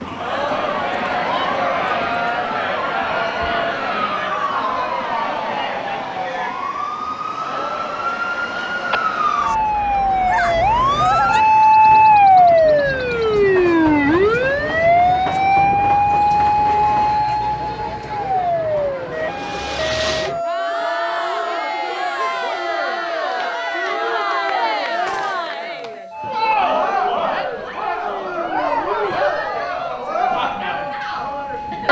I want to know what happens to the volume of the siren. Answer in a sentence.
The loudness of the siren goes up, then down.